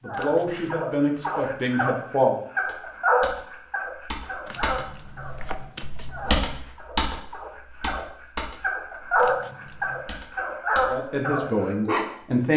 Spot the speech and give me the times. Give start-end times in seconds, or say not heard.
0.0-2.4, 10.8-12.5.